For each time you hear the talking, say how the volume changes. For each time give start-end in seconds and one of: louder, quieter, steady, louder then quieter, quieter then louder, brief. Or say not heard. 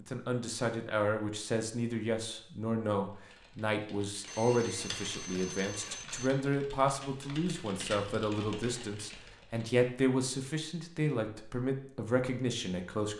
0.0-13.1 steady.